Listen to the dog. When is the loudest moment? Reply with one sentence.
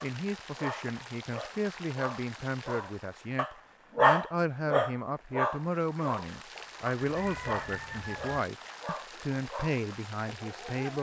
The loudest moment of the dog is at 4 seconds.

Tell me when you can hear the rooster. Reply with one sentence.
You can hear the rooster from 7.0 to 8.4 s.